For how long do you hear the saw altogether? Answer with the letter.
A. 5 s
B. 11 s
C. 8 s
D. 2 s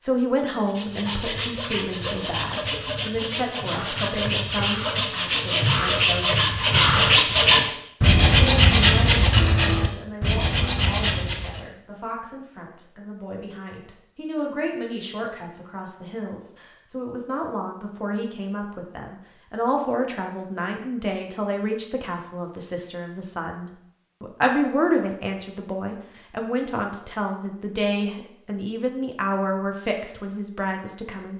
B.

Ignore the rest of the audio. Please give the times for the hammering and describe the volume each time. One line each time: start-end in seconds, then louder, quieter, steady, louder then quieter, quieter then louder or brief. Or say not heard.
not heard.